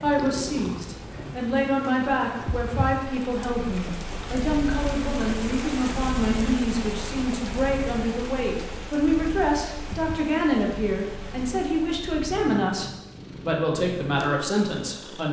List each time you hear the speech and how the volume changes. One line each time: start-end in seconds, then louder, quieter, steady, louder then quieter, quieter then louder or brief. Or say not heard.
0.0-15.2 steady.